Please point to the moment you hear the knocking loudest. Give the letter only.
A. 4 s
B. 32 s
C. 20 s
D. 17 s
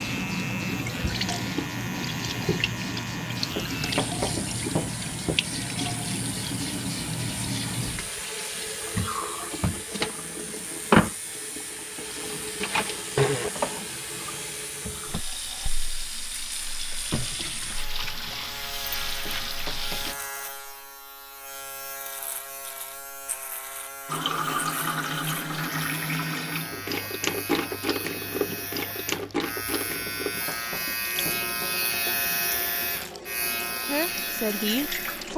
A.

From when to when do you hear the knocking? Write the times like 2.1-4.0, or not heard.
3.5-5.4, 19.2-20.3, 30.1-31.5.